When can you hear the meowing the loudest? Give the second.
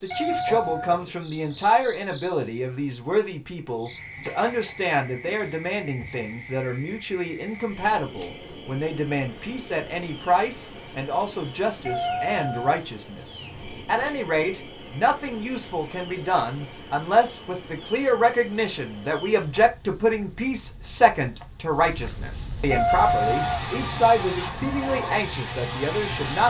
23 s.